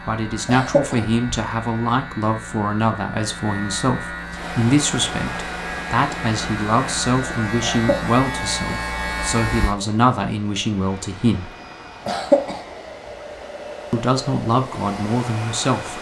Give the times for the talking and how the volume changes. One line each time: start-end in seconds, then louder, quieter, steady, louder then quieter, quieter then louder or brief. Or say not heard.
0.1-11.5 steady
13.9-15.9 brief.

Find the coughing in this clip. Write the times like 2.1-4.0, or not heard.
0.5-1.1, 7.6-8.2, 12.1-12.6.